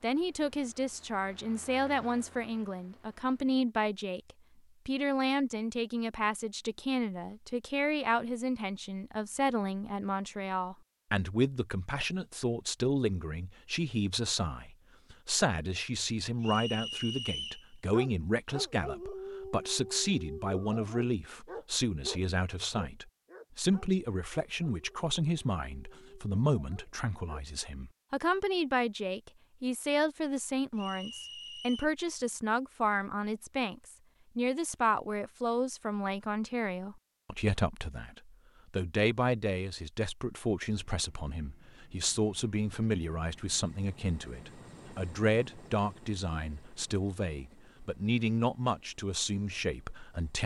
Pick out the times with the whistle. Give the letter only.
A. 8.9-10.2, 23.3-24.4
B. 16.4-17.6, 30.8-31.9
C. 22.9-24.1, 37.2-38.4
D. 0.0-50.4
B.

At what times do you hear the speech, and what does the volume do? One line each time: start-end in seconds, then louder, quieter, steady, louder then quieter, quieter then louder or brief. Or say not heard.
0.0-50.4 steady.